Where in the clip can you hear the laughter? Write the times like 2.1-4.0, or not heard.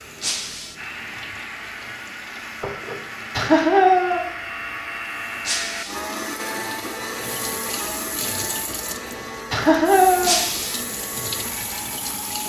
3.4-4.2, 9.5-10.4.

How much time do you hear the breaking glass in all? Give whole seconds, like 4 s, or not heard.
2 s.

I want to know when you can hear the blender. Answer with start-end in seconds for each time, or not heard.
0.0-12.4.